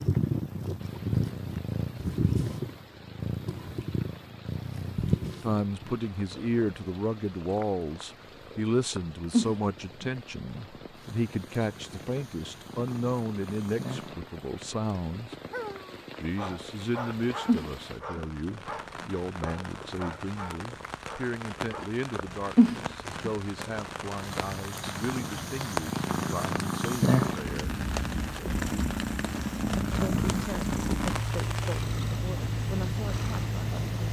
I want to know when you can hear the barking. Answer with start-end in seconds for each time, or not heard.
15.3-21.9.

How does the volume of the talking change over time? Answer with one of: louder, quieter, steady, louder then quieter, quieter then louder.
quieter.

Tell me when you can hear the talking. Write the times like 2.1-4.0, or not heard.
5.4-15.3, 16.2-27.8, 29.9-33.8.